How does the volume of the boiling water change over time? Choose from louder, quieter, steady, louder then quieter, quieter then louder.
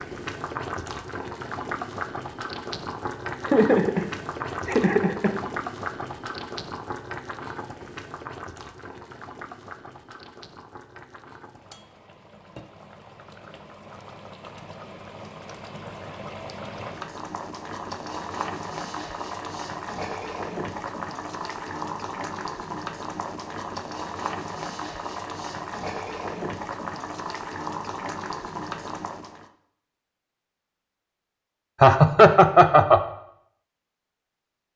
quieter then louder.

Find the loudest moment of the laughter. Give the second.
32 s.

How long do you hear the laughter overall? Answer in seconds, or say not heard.
3 s.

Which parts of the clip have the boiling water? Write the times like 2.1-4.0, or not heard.
0.0-29.5.